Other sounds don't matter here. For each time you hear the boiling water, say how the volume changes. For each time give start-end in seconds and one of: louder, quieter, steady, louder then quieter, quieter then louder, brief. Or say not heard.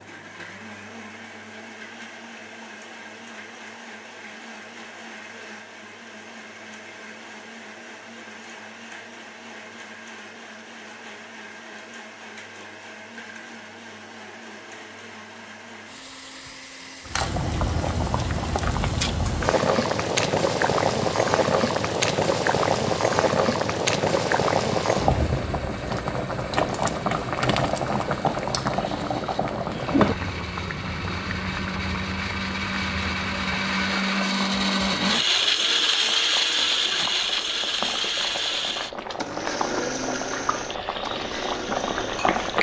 17.1-42.5 quieter then louder.